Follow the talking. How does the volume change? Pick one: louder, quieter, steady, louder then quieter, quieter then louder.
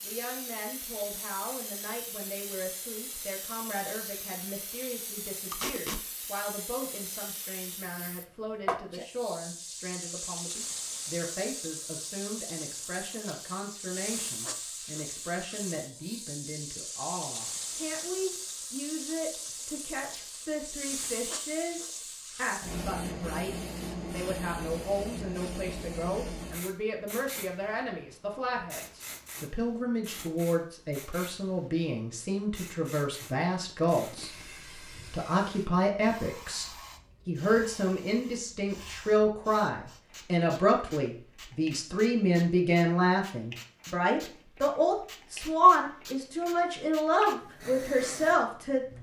louder.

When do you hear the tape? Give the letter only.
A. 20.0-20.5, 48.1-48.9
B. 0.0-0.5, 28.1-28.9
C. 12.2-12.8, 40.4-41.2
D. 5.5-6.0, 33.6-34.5
D.